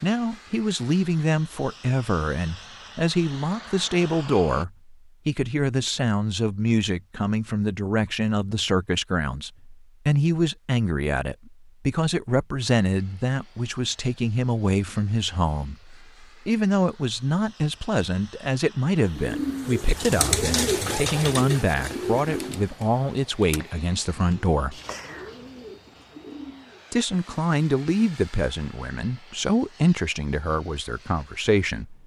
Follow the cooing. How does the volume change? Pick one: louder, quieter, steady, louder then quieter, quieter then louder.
quieter.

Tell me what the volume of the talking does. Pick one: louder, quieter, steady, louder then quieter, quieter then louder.
steady.